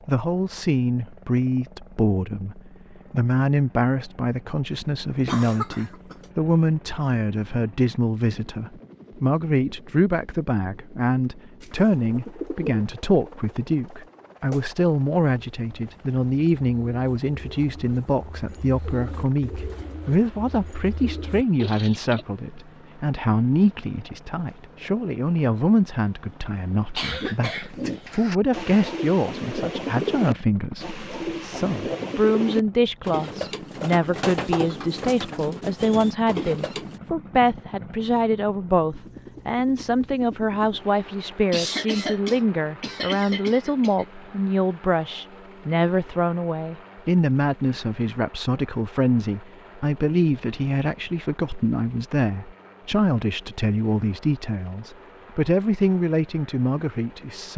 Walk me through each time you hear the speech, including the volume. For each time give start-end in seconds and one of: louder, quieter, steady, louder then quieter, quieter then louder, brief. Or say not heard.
0.1-57.5 steady.